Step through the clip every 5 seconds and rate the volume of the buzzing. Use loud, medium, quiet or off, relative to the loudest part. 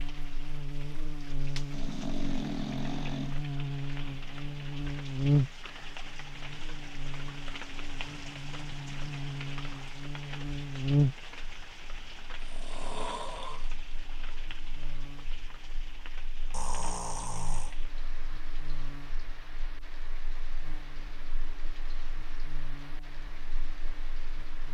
medium, loud, loud, quiet, quiet.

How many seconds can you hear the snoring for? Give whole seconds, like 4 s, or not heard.
4 s.